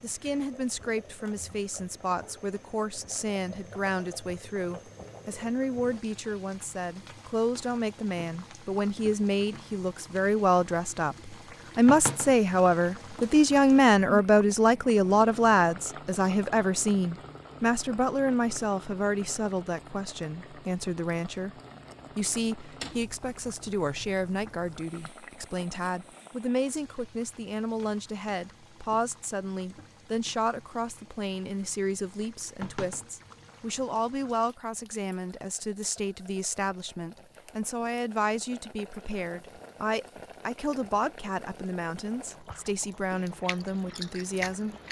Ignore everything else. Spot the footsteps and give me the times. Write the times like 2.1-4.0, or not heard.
not heard.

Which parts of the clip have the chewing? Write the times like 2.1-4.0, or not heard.
42.3-44.8.